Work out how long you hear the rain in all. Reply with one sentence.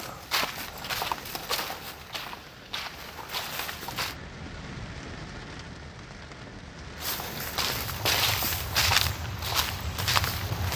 The rain can be heard for 11 seconds in total.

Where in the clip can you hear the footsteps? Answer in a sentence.
You can hear the footsteps from 0.0 to 4.2 s and from 7.0 to 10.7 s.